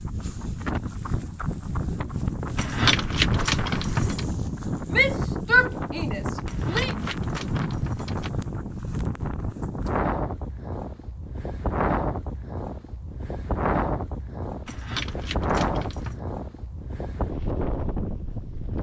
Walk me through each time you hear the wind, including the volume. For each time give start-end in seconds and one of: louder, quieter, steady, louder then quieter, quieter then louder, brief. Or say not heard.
0.0-18.7 steady.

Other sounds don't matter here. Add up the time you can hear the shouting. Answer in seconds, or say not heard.
2 s.